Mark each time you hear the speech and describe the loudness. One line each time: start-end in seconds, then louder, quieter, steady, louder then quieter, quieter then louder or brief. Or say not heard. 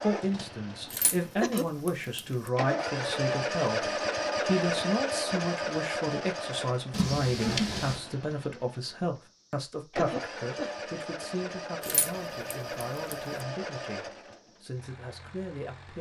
0.0-15.9 quieter.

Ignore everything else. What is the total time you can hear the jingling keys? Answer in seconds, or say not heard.
4 s.